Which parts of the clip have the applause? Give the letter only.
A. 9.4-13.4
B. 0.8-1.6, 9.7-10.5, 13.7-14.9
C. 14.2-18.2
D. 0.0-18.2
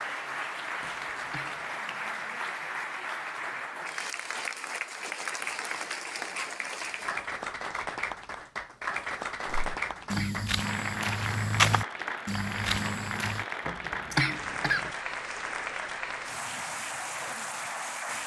D.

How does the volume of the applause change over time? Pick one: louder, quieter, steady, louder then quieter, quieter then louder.
steady.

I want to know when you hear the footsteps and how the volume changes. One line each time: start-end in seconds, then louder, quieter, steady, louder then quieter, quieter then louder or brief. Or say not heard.
9.4-13.4 louder then quieter.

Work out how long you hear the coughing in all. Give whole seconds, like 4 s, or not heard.
3 s.